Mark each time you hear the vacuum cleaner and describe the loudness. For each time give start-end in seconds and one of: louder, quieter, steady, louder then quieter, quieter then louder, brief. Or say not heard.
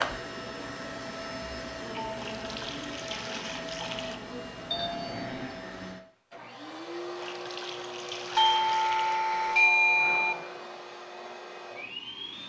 0.0-12.4 steady.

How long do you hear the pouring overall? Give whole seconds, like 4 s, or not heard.
4 s.